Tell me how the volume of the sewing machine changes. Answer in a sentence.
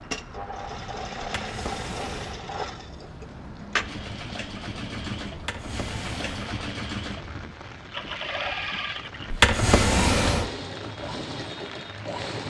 The volume of the sewing machine stays about the same.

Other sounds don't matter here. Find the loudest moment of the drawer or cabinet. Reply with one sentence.
The loudest moment of the drawer or cabinet is at 10 seconds.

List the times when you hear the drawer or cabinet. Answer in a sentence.
The drawer or cabinet can be heard from 1.2 to 2.4 s, from 5.3 to 6.5 s and from 9.3 to 10.5 s.